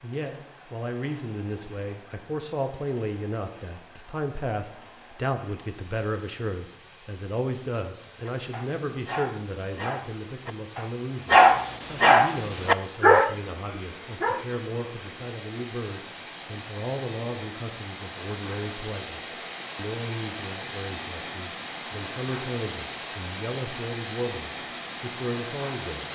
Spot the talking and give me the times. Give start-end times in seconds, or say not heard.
0.0-26.1.